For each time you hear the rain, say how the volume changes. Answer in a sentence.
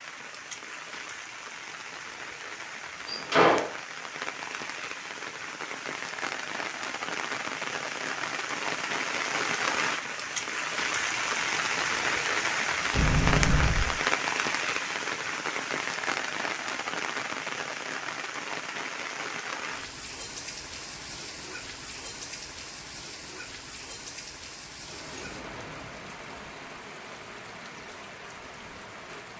You can hear the rain from 0.0 to 29.3 s, getting louder then quieter.